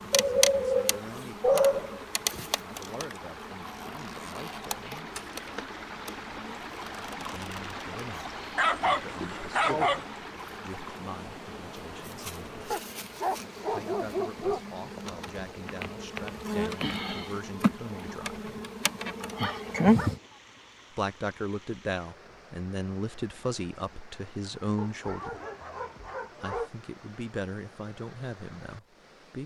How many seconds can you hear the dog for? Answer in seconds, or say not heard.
8 s.